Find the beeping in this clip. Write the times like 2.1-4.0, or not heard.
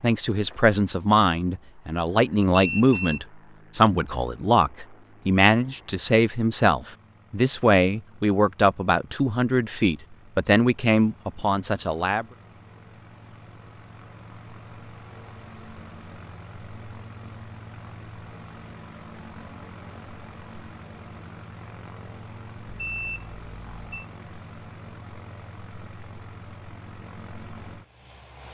2.4-3.2, 22.6-24.1.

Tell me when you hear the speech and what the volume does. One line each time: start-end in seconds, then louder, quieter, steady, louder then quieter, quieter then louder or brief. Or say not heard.
0.0-12.2 steady.